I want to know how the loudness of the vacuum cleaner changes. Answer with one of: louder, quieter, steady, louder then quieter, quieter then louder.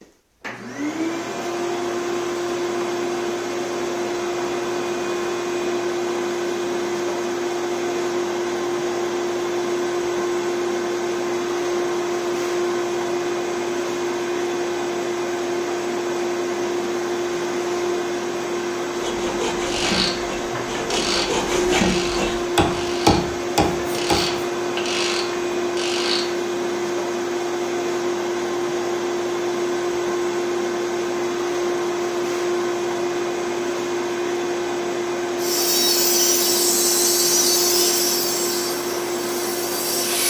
steady.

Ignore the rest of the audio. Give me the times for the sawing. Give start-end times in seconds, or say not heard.
18.9-24.4, 35.4-40.2.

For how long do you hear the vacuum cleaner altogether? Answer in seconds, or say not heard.
40 s.